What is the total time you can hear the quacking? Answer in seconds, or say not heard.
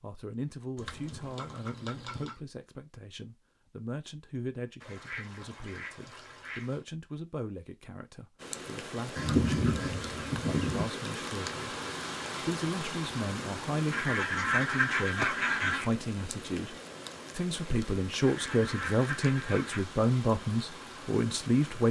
9 s.